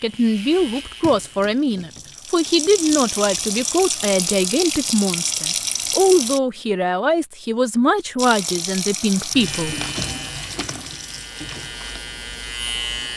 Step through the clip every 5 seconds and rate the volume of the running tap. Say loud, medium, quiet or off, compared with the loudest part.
loud, loud, medium.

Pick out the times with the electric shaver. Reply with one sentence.
You can hear the electric shaver from 0.0 to 1.6 s and from 9.3 to 13.1 s.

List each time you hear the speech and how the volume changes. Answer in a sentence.
The speech can be heard from 0.0 to 9.8 s, at a steady volume.